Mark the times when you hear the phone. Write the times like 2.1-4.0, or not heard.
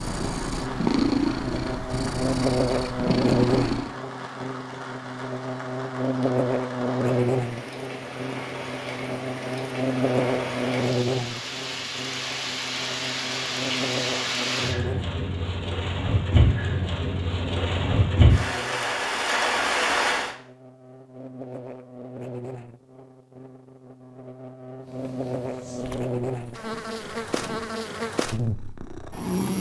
not heard.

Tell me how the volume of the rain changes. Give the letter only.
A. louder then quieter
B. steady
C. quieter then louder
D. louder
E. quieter
D.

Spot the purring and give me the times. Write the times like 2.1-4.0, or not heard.
0.0-4.0, 24.8-29.4.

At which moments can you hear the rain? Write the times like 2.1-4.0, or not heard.
0.0-20.4.